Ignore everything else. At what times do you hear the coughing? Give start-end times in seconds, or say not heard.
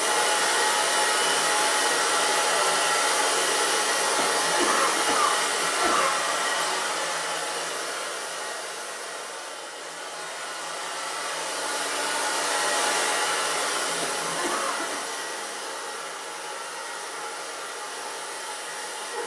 4.2-6.1, 13.9-15.1.